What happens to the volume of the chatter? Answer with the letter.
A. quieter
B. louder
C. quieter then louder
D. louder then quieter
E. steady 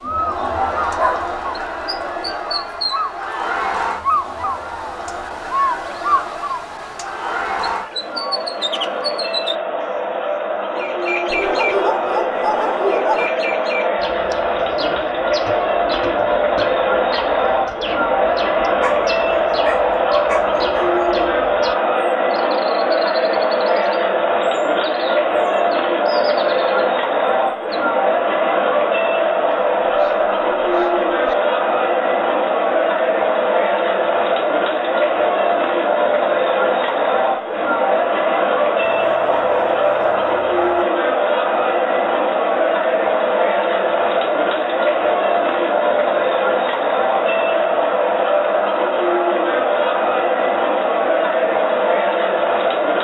B.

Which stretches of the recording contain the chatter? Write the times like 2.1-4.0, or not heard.
0.0-52.9.